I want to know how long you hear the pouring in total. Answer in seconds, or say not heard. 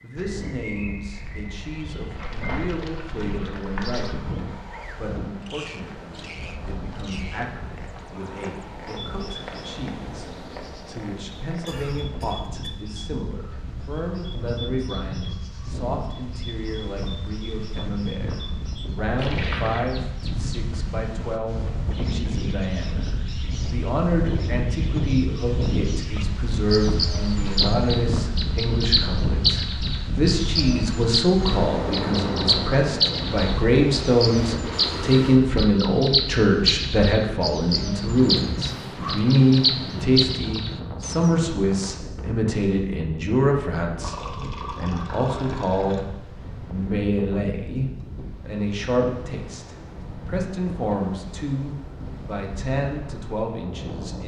5 s.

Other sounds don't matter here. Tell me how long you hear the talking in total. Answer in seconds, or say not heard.
54 s.